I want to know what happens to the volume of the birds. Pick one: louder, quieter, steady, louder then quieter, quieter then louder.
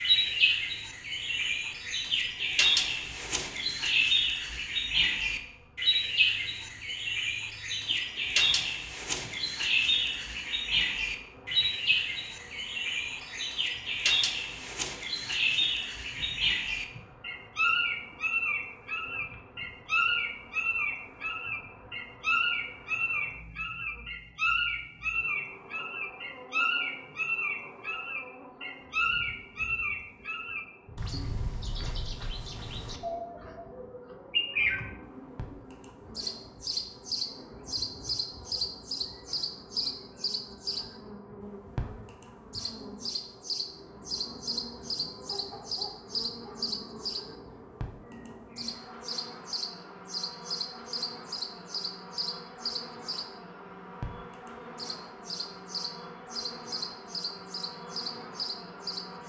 quieter.